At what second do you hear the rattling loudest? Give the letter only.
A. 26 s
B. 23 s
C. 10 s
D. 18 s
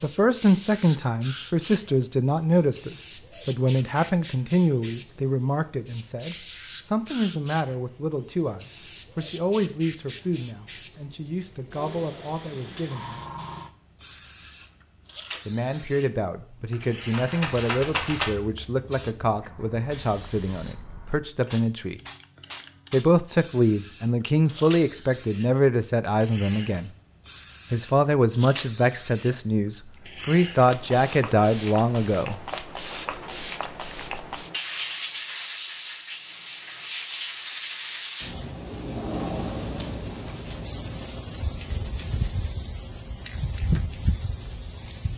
D.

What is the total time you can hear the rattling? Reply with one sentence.
You can hear the rattling for 2 seconds altogether.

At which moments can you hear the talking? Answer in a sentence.
The talking can be heard from 0.0 to 13.2 s, from 15.4 to 22.0 s, from 22.9 to 26.9 s and from 27.7 to 32.4 s.